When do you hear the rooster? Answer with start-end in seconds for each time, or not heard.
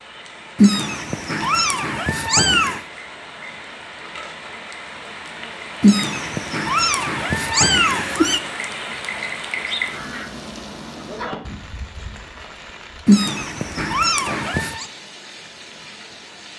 not heard.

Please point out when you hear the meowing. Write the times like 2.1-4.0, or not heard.
0.6-2.8, 5.8-8.4, 13.1-14.8.